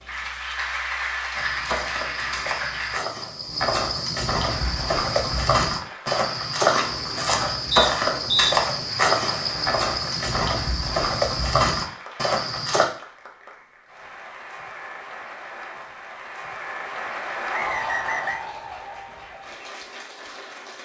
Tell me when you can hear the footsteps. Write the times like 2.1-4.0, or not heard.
1.4-12.8.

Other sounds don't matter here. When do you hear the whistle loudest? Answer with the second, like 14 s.
8 s.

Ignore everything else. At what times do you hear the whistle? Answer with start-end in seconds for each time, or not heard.
7.7-8.6, 17.5-18.4.